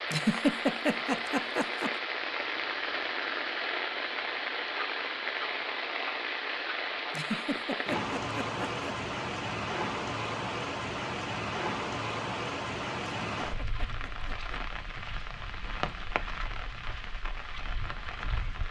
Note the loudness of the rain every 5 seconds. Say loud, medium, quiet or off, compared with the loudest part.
loud, loud, loud, medium.